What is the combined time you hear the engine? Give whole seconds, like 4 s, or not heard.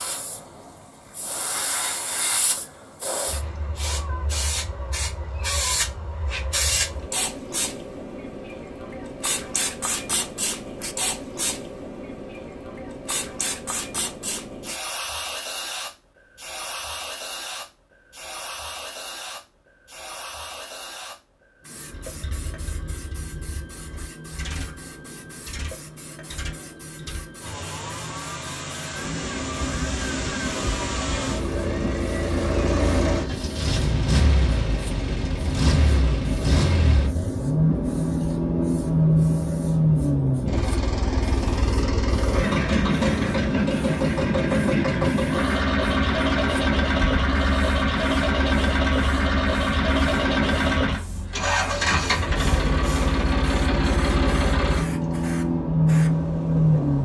35 s.